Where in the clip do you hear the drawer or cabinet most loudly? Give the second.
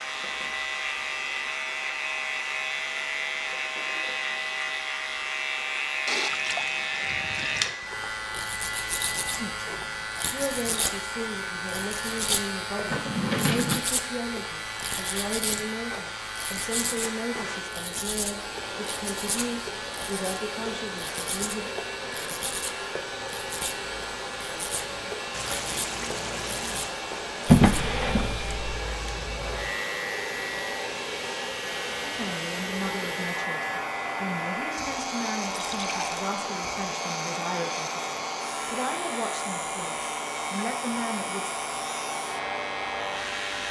28 s.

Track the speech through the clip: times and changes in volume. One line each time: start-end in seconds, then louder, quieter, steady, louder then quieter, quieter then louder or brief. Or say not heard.
9.3-21.7 steady
32.0-41.5 steady.